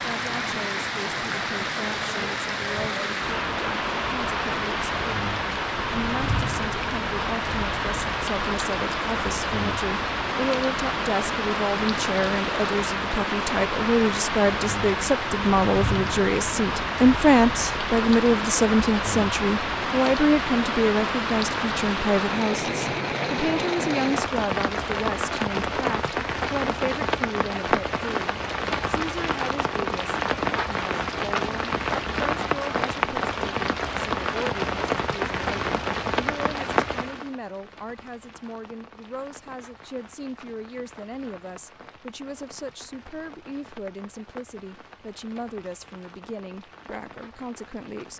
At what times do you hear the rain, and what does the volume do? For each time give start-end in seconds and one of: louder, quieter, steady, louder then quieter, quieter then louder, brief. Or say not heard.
0.0-48.1 quieter.